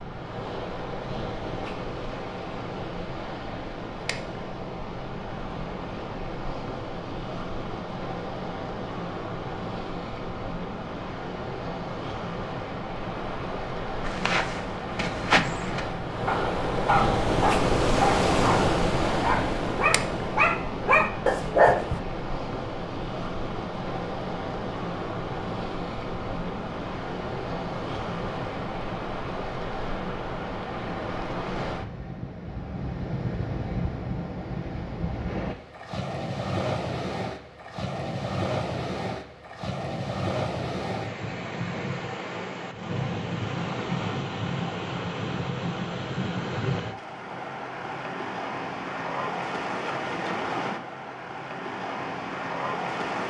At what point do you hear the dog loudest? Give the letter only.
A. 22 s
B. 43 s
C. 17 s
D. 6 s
A.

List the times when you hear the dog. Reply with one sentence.
You can hear the dog from 14.1 to 22.0 s.